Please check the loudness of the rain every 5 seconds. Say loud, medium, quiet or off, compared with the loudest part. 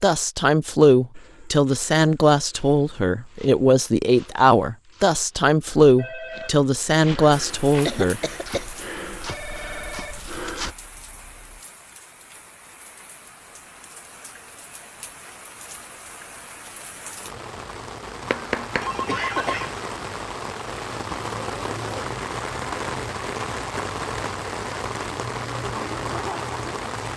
off, quiet, quiet, medium, loud, loud.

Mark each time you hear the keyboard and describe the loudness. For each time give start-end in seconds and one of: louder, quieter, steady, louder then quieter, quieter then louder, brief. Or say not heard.
not heard.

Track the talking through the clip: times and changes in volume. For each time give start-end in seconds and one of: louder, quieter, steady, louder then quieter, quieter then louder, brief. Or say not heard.
0.0-8.2 steady.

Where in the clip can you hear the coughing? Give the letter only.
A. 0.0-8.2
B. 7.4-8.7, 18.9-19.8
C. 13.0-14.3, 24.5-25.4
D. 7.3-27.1
B.